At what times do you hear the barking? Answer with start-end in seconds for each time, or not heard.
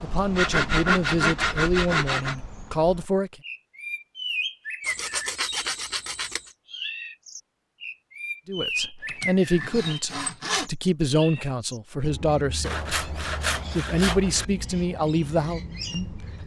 not heard.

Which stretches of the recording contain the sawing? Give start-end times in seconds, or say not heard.
0.3-2.4, 4.8-6.5, 9.1-10.7, 12.6-14.4.